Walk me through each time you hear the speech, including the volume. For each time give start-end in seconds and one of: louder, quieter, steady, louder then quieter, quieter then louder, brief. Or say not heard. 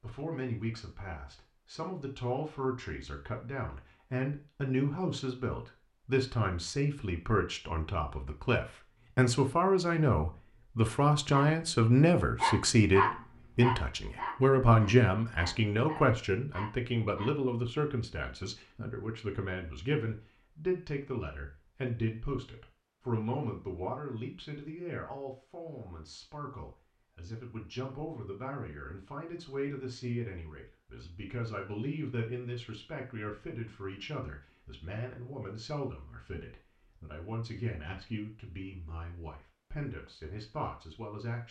0.0-41.4 louder then quieter.